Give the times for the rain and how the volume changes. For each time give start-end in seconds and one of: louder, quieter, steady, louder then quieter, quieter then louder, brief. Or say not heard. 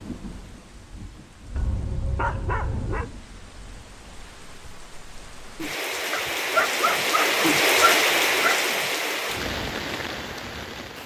0.0-11.0 louder then quieter.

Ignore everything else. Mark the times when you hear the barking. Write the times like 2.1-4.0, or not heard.
1.6-3.1, 6.1-8.6.